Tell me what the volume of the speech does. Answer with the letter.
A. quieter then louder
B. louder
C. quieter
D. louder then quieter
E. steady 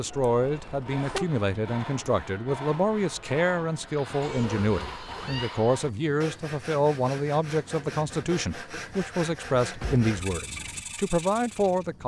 E.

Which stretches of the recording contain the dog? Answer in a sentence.
The dog can't be heard in this clip.